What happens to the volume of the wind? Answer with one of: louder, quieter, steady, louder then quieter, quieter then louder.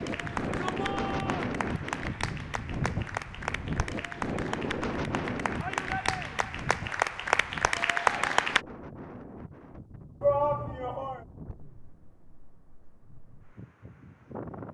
quieter.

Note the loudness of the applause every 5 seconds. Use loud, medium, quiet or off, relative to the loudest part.
medium, loud, off.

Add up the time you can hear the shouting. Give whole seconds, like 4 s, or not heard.
3 s.